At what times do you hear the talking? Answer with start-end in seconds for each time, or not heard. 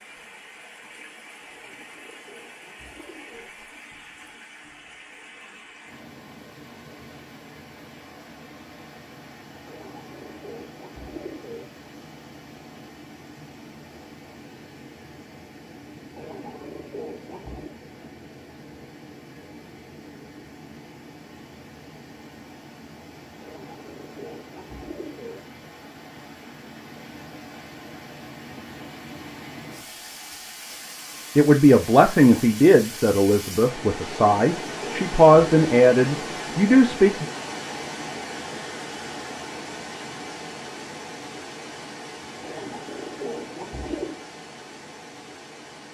31.4-37.2.